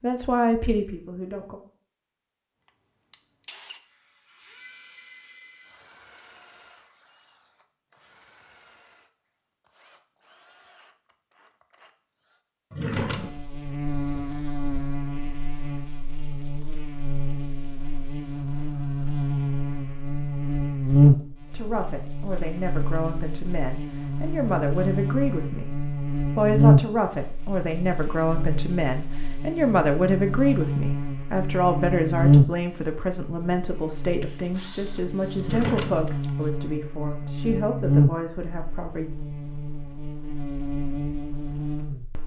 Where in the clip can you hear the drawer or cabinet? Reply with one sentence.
The drawer or cabinet can be heard from 12.7 to 13.3 s and from 35.4 to 36.3 s.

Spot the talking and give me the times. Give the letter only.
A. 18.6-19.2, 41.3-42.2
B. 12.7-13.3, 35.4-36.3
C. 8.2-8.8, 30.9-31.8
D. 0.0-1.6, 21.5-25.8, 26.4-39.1
D.